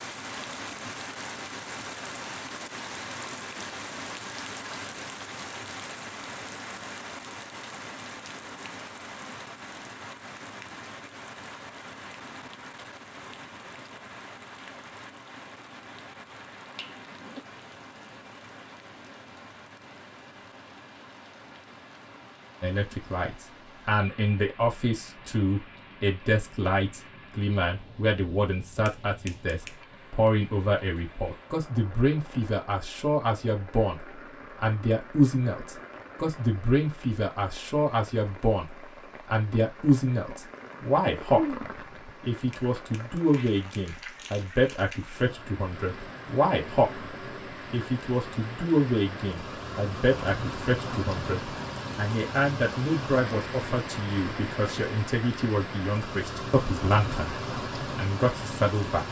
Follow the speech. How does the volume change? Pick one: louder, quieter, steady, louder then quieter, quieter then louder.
steady.